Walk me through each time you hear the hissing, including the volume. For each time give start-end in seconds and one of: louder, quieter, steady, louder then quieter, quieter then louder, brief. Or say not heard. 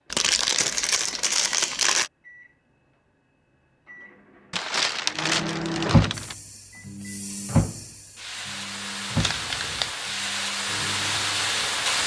6.1-12.0 louder.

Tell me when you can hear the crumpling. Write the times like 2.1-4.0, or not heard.
0.1-2.1, 4.5-6.3, 9.2-9.9.